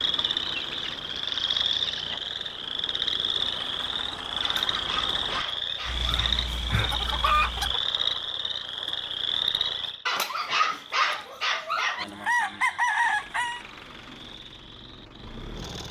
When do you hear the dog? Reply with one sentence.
The dog can be heard from 4.4 to 6.5 s and from 10.1 to 12.1 s.